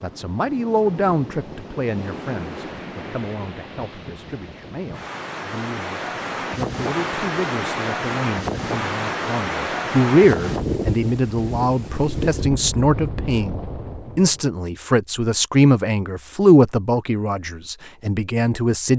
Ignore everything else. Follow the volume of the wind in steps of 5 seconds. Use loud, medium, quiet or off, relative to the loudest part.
medium, loud, loud, off.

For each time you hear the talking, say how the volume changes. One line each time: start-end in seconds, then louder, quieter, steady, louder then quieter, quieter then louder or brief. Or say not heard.
0.0-13.6 quieter then louder
14.2-18.9 louder then quieter.